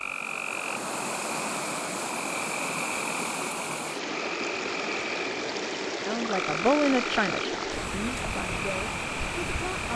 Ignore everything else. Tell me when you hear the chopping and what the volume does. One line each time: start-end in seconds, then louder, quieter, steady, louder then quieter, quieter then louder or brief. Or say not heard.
not heard.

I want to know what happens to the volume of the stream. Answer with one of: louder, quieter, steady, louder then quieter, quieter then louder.
steady.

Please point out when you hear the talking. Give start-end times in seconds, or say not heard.
6.0-9.9.